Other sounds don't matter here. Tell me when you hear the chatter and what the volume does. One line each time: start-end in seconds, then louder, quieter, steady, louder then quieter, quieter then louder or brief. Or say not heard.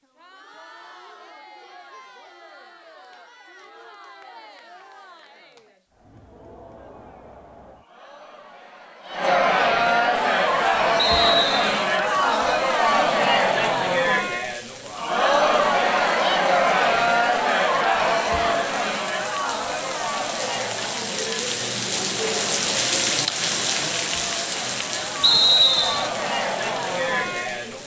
0.0-27.8 louder then quieter.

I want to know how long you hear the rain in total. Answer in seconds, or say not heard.
18 s.